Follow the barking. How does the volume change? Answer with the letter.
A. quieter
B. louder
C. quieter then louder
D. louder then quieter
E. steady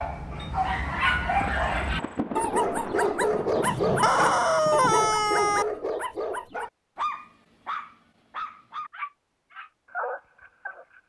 A.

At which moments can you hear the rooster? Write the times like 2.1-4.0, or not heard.
3.6-5.7.